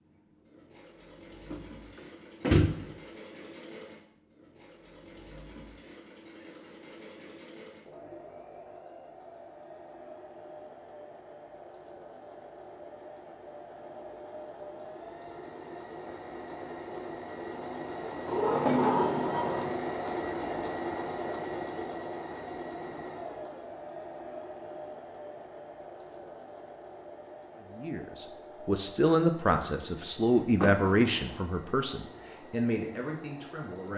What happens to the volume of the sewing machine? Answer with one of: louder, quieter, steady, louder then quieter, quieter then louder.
louder then quieter.